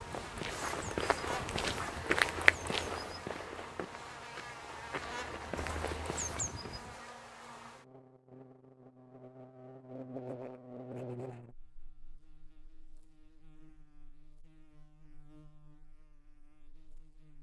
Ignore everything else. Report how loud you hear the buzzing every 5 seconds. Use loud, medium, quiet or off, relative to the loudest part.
loud, loud, loud, quiet.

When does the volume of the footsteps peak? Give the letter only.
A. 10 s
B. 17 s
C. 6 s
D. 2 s
D.